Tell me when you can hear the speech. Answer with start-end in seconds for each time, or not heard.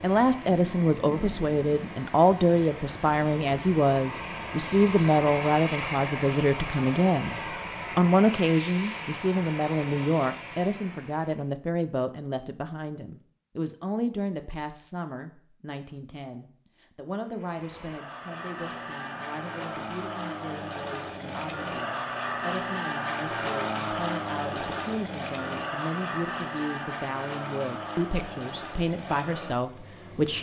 0.0-30.3.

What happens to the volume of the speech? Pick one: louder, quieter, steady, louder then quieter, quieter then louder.
quieter then louder.